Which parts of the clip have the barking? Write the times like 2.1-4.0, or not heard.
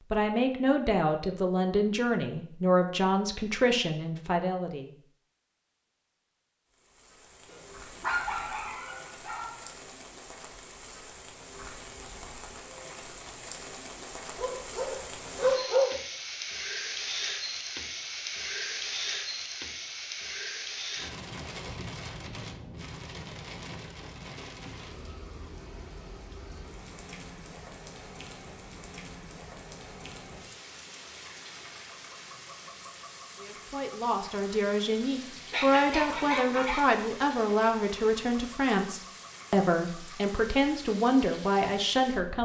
7.5-9.7, 14.3-15.9, 35.5-36.9.